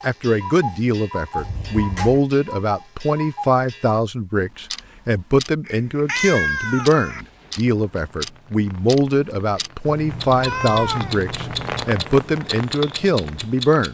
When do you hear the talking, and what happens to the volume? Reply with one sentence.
The talking can be heard from 0.0 to 13.8 s, at a steady volume.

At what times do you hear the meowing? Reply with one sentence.
The meowing can be heard from 1.4 to 2.2 s, from 5.7 to 7.2 s and from 9.8 to 11.8 s.